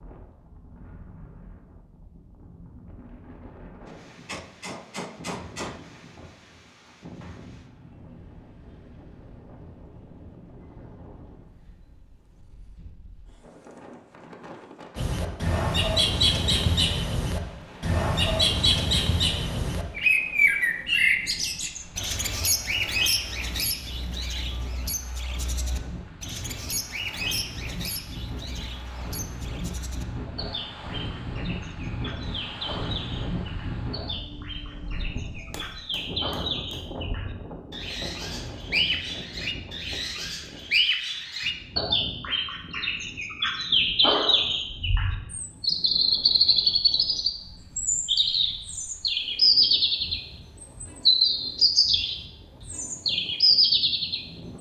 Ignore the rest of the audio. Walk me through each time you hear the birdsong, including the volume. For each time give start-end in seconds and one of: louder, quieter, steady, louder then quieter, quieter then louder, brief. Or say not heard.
14.9-54.5 quieter then louder.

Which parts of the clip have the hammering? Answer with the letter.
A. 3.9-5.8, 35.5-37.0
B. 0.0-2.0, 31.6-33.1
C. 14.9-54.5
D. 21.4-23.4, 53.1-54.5
A.